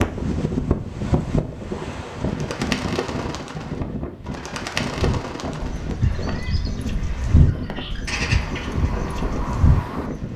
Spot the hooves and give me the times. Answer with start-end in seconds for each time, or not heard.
5.0-10.3.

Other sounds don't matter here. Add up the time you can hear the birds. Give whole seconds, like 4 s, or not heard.
8 s.